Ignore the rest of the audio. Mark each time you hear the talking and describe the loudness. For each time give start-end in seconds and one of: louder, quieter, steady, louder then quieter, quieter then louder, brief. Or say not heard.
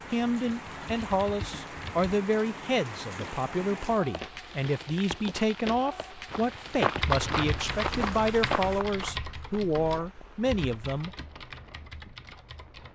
0.1-11.1 steady.